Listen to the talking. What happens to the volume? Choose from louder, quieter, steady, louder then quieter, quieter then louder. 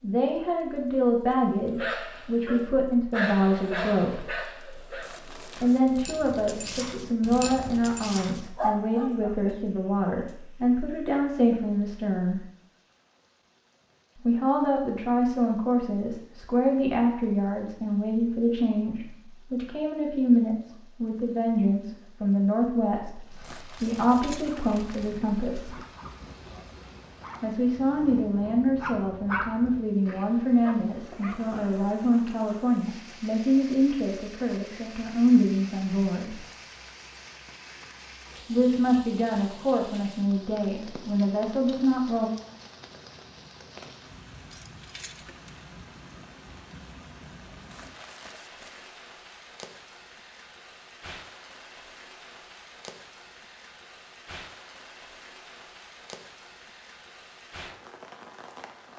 steady.